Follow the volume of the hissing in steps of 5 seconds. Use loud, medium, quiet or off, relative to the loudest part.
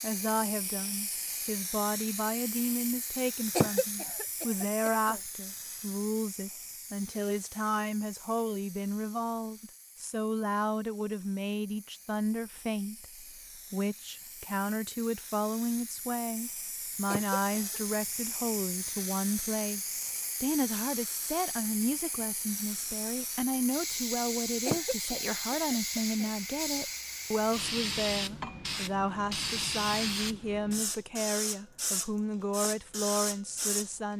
medium, quiet, quiet, medium, loud, loud, loud.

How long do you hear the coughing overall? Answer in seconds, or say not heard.
4 s.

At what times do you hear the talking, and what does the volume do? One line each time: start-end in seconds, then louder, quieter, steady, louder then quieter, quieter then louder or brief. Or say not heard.
0.0-34.1 steady.